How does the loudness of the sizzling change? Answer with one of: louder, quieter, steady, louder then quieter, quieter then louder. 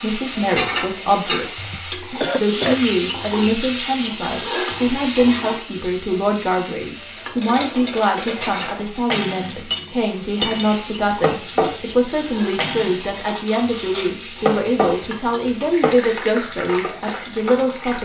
quieter.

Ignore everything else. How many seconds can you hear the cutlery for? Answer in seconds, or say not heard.
9 s.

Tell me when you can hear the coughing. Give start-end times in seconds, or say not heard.
1.7-2.8.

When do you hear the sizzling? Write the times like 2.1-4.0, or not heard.
0.0-18.0.